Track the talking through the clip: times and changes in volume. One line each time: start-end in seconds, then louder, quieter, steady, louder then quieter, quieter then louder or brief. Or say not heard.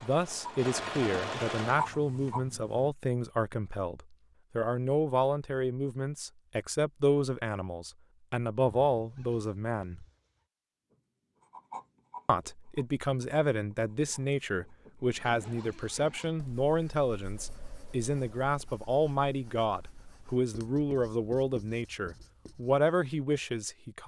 0.0-10.1 steady
12.2-24.0 steady.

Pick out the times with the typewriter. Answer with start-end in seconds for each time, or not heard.
not heard.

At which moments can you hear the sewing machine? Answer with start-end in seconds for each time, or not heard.
0.0-2.9.